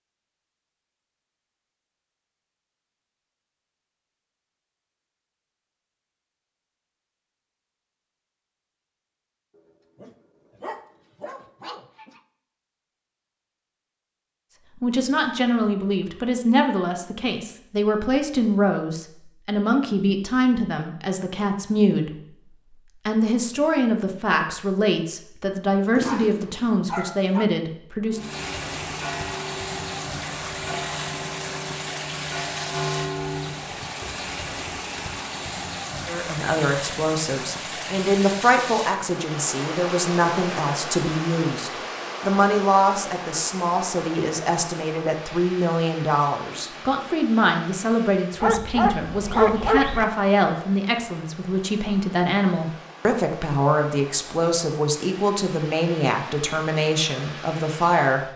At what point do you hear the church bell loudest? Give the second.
33 s.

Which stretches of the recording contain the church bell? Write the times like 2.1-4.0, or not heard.
28.1-33.6.